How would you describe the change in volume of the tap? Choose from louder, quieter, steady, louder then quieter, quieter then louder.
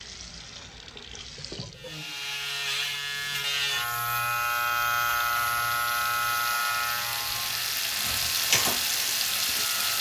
louder.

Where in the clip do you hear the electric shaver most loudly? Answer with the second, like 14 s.
5 s.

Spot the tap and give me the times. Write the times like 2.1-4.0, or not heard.
0.0-9.9.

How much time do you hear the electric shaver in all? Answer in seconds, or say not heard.
8 s.